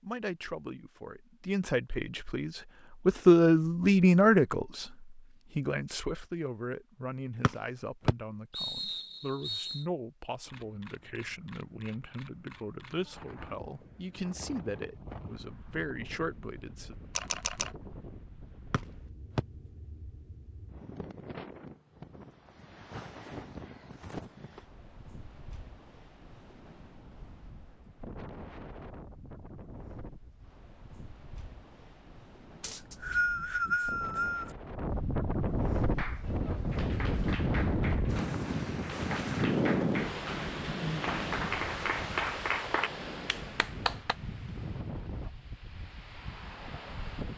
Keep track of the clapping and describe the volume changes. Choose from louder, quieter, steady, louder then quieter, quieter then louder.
louder.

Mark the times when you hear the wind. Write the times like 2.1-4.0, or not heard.
13.2-47.3.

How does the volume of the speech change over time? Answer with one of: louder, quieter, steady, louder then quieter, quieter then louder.
quieter.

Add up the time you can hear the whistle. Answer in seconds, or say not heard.
5 s.